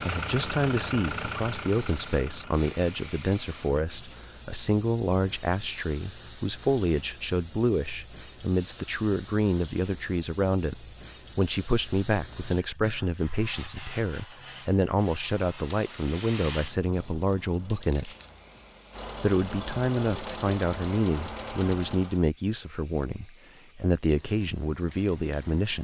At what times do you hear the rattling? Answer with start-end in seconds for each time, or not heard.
15.8-16.8.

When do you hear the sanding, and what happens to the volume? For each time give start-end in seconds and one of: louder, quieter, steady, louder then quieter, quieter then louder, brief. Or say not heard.
not heard.